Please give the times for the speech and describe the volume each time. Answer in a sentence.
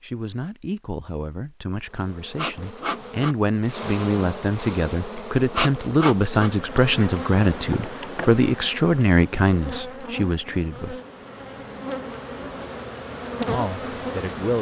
The speech can be heard from 0.0 to 11.0 s, getting louder; and briefly from 13.4 to 14.5 s.